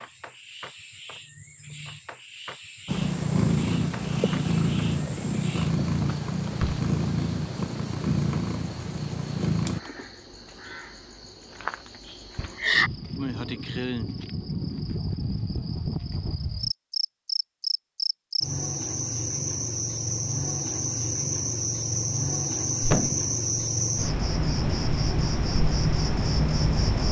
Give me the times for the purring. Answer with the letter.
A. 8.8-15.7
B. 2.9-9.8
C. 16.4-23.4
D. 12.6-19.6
B.